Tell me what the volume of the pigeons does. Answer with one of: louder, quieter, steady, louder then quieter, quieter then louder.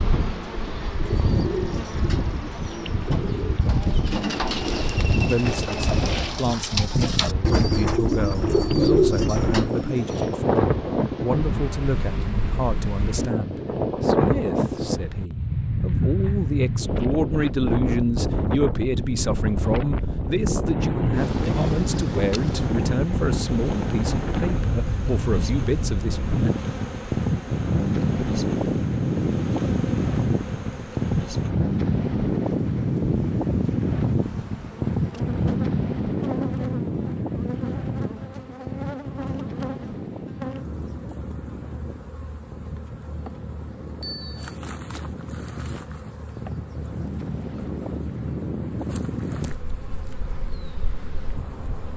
louder.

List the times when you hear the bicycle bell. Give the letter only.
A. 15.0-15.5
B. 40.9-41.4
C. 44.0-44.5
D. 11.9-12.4
C.